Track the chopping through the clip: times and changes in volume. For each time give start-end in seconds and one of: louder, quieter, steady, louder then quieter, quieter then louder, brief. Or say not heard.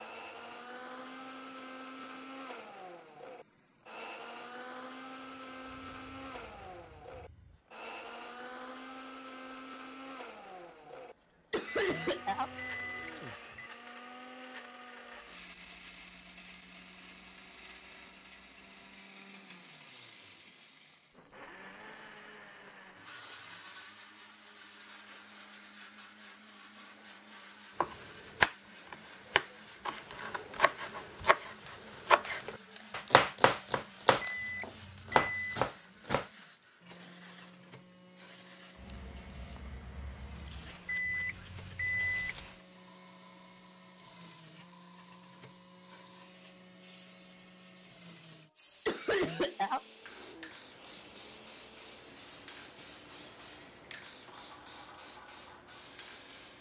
27.8-36.2 quieter then louder.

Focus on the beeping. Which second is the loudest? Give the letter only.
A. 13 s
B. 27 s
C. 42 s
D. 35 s
C.